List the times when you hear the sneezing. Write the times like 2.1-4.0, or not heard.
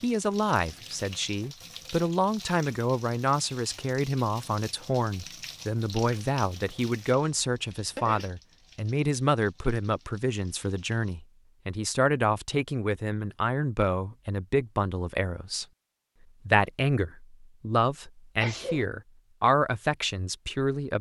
7.3-8.3, 18.4-18.9.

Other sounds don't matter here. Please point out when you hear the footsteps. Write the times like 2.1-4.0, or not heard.
not heard.